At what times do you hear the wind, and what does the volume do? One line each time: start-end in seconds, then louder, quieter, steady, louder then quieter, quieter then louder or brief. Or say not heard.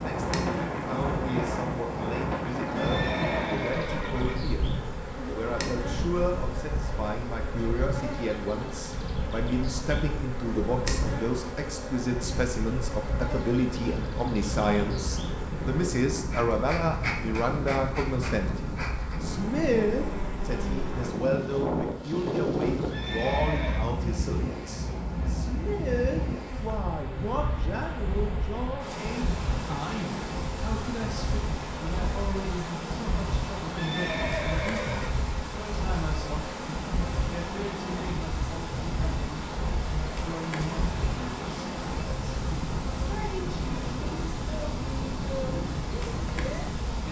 0.0-47.0 steady.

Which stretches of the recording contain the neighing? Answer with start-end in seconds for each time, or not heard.
2.8-4.3, 22.9-23.8, 33.8-35.2.